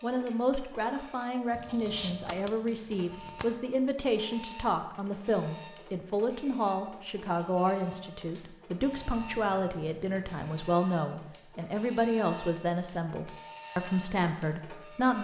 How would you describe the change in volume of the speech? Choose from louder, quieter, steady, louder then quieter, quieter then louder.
steady.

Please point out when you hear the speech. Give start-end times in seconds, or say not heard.
0.0-15.1.